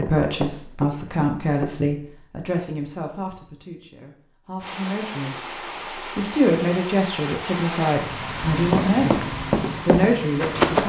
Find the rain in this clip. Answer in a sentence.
You can hear the rain from 4.6 to 10.8 s.